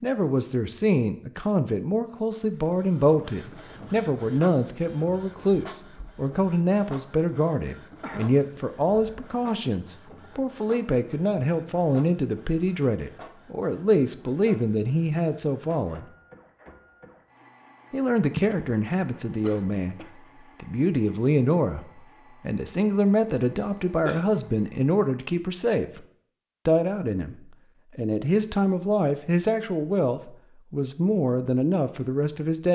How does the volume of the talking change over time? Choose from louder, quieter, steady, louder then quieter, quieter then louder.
steady.